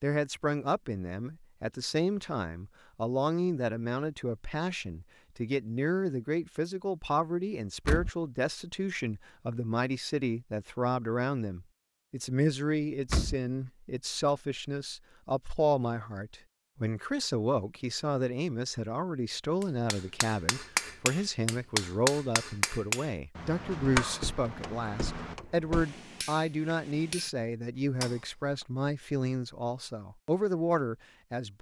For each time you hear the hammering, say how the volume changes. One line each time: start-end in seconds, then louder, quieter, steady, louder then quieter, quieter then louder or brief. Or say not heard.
19.6-27.3 quieter
28.0-28.6 brief.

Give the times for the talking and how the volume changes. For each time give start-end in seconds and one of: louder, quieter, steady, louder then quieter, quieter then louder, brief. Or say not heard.
0.0-31.5 steady.